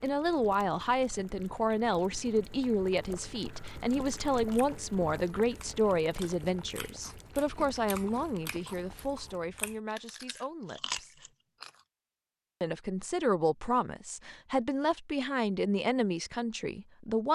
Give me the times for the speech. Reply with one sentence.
The speech can be heard from 0.0 to 11.2 s and from 12.6 to 17.2 s.